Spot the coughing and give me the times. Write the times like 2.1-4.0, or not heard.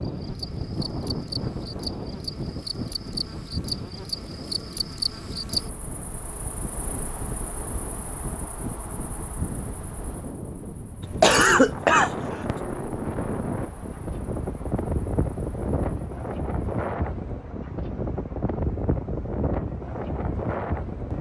11.0-12.6.